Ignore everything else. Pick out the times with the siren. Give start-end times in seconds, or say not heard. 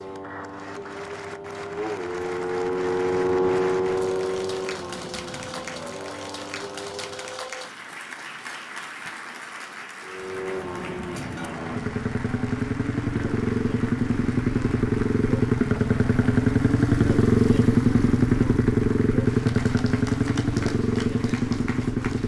not heard.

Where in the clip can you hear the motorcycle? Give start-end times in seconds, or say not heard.
0.0-7.5, 10.0-22.2.